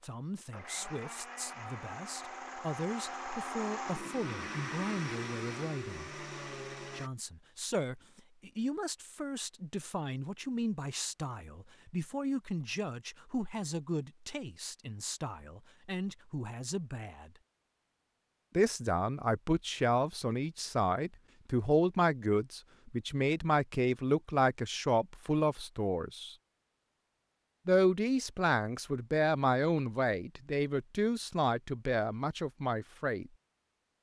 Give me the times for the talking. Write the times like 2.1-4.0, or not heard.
0.0-6.1, 6.9-17.4, 18.6-26.4, 27.6-33.3.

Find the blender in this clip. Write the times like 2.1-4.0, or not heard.
0.0-7.1.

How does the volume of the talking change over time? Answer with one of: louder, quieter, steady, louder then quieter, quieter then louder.
louder.